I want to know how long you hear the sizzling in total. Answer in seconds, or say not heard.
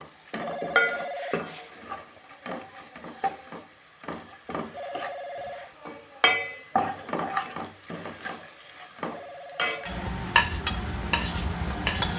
12 s.